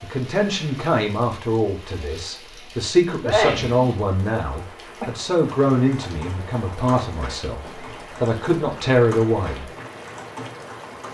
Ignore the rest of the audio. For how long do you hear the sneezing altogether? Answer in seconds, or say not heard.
2 s.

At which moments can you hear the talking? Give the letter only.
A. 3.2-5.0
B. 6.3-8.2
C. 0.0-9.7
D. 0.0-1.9
C.